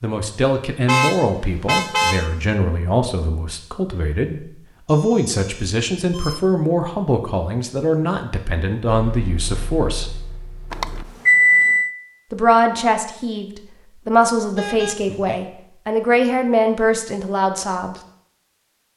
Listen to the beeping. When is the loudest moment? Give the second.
11 s.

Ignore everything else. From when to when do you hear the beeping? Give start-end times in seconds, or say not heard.
4.8-6.5, 10.7-11.9.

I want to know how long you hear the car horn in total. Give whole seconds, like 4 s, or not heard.
2 s.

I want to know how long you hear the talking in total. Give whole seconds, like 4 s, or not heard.
16 s.